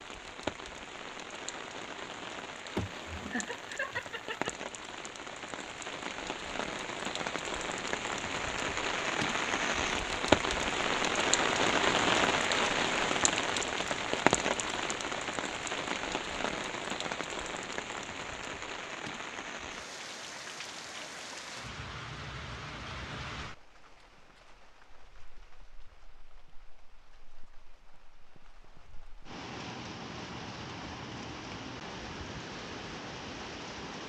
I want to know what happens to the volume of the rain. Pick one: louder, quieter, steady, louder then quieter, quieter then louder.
louder then quieter.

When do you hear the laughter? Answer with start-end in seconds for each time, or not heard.
2.8-4.5.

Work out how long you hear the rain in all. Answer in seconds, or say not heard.
34 s.